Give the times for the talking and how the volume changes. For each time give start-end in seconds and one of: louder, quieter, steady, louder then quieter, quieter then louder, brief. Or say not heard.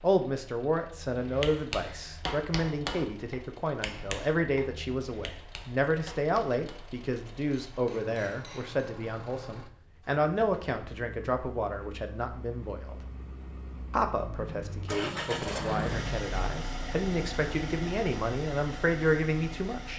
0.0-13.0 steady
13.9-19.9 louder.